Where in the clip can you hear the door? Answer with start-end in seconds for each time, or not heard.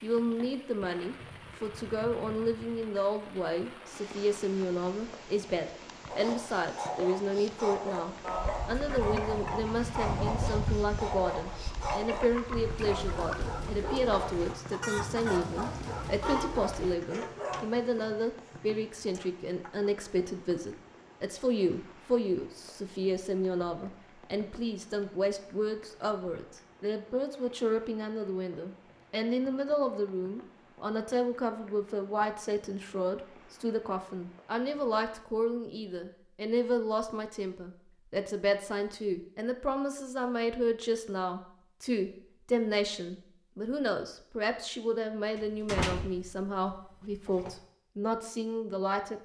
45.4-47.5.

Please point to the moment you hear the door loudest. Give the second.
46 s.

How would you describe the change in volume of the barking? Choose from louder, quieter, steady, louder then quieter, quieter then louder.
steady.